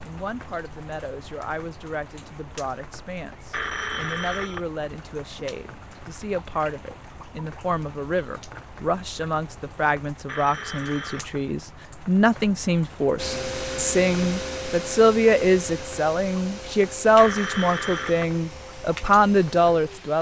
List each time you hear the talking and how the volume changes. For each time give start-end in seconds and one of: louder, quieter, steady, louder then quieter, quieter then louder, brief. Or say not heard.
0.0-20.1 louder.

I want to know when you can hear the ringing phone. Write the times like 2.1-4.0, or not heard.
3.5-4.6, 10.2-11.3, 17.1-18.2.